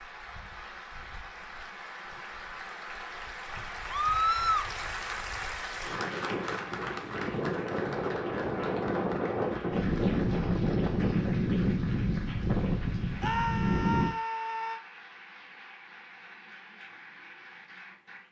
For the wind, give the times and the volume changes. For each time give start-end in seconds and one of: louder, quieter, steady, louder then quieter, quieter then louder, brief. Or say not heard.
0.1-14.2 louder.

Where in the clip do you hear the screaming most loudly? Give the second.
4 s.